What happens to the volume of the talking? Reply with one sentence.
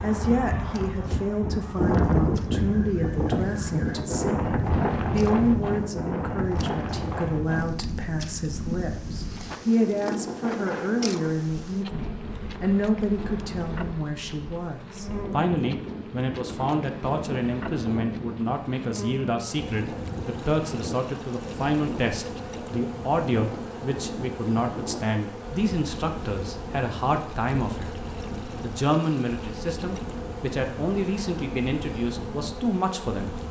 The volume of the talking stays about the same.